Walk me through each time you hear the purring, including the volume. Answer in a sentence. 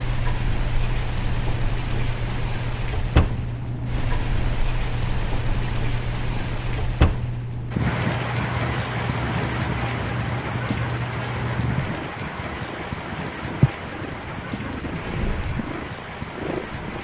You can hear the purring from 0.0 to 16.9 s, at a steady volume.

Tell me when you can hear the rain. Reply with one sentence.
The rain can be heard from 0.0 to 16.9 s.